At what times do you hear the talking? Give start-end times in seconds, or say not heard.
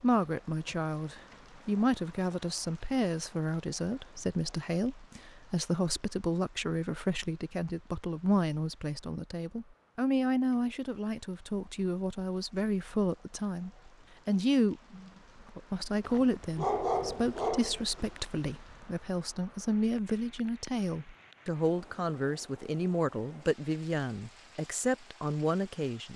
0.0-26.1.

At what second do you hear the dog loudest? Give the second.
17 s.